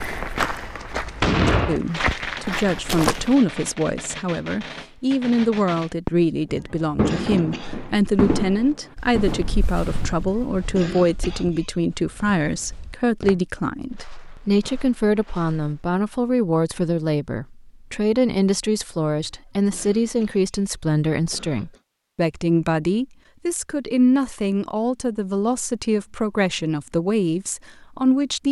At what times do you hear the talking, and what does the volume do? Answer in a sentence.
You can hear the talking from 1.6 to 28.4 s, at a steady volume.